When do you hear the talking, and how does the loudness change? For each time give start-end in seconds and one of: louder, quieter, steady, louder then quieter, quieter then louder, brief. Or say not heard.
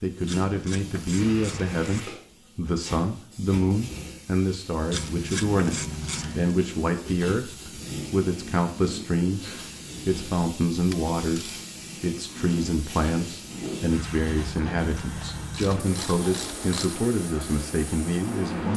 0.0-18.7 steady.